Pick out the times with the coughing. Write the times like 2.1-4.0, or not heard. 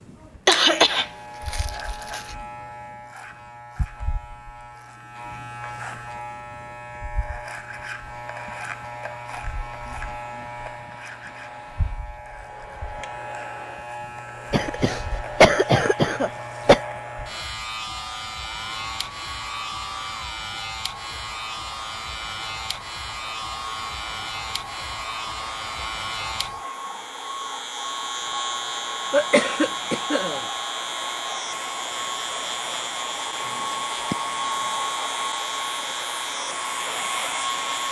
0.5-2.4, 14.5-16.8, 29.1-30.4.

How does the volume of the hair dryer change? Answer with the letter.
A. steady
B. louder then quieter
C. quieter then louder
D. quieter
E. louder
E.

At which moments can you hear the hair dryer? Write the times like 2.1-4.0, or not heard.
7.9-37.8.